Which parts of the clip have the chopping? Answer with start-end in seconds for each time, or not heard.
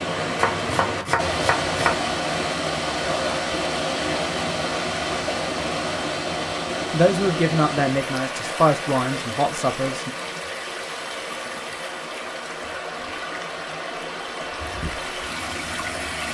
0.3-2.0.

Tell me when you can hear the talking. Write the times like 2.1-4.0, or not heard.
6.9-10.2.